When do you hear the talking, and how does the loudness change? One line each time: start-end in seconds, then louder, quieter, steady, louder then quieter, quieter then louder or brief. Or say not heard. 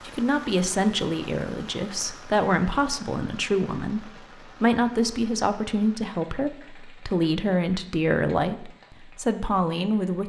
0.1-10.2 steady.